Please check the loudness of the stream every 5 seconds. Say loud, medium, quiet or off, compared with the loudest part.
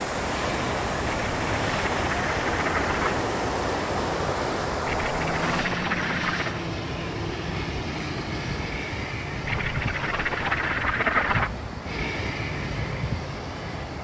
loud, medium, medium.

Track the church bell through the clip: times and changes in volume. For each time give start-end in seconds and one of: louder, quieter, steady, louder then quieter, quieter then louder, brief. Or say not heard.
not heard.